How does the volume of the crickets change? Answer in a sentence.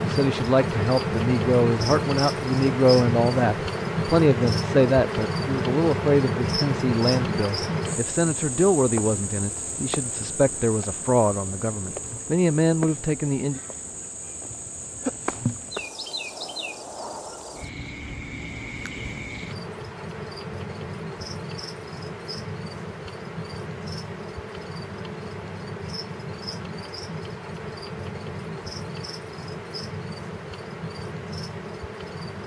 The loudness of the crickets goes down.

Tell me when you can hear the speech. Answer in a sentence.
You can hear the speech from 0.0 to 13.6 s.